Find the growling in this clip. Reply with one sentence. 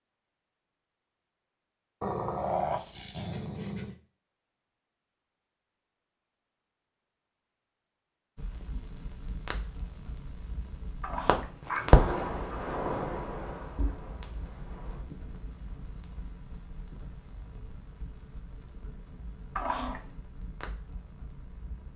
The growling can be heard from 2.0 to 4.0 s, from 11.0 to 12.3 s and from 19.6 to 20.1 s.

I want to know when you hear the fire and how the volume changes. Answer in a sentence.
You can hear the fire from 8.3 to 21.9 s, getting louder then quieter.